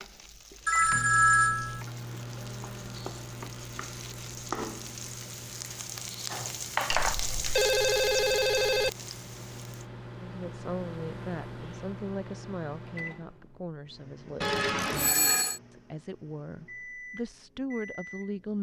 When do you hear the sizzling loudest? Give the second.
7 s.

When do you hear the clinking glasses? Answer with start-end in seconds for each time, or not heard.
not heard.